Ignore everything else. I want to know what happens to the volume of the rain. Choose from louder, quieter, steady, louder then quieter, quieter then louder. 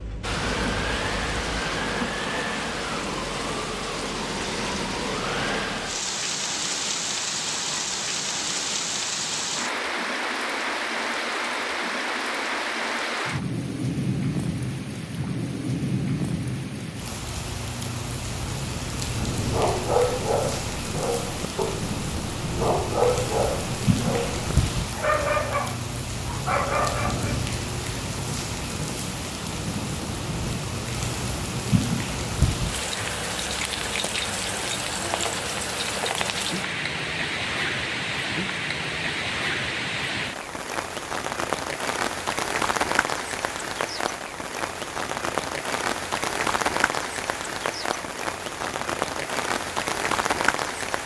steady.